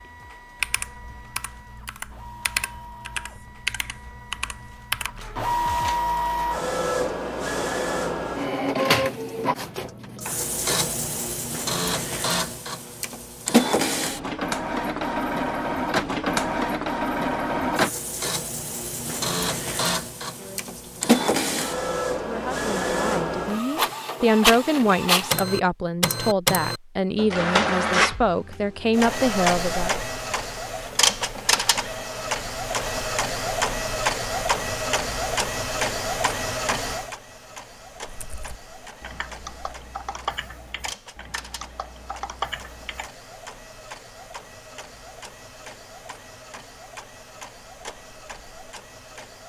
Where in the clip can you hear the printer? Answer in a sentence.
The printer can be heard from 0.0 to 49.4 s.